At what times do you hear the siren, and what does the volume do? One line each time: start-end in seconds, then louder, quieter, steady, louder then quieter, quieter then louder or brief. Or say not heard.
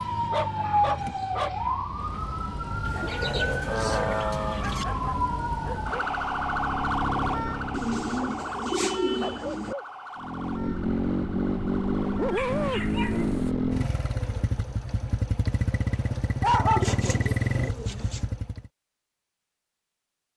0.0-13.6 quieter.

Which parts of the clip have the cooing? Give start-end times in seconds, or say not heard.
2.9-4.8, 7.7-9.8, 16.7-18.2.